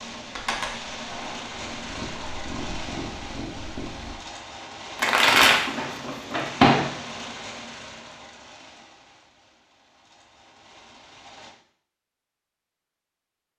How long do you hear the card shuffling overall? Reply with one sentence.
You can hear the card shuffling for 2 seconds altogether.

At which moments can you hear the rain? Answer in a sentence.
You can hear the rain from 0.0 to 11.6 s.